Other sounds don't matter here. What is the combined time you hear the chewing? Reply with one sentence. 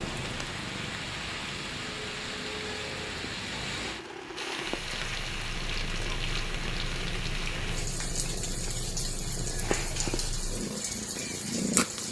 The chewing can't be heard in this clip.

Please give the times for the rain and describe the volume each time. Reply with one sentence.
The rain can be heard from 0.0 to 12.0 s, at a steady volume.